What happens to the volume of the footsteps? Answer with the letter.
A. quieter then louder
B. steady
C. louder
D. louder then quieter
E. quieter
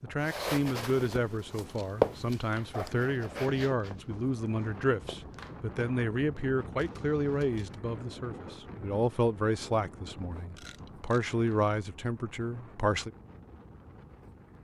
D.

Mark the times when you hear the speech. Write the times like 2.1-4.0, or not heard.
0.0-13.1.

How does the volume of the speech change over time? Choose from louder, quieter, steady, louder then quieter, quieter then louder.
steady.